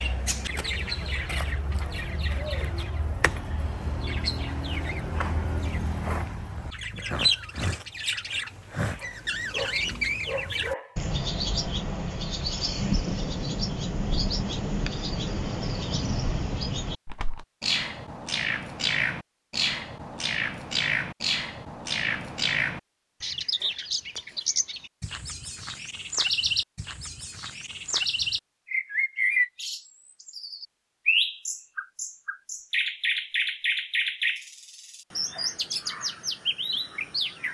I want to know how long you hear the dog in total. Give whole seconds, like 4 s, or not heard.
2 s.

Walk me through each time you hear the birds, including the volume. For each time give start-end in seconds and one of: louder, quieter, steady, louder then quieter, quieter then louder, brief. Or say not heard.
0.0-37.4 steady.